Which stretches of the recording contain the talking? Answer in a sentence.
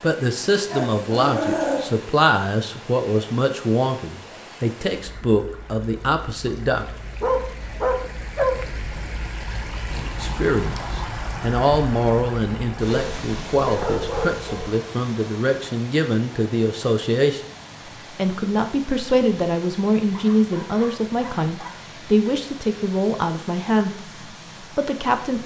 You can hear the talking from 0.0 to 6.8 s, from 9.9 to 17.4 s and from 18.1 to 25.4 s.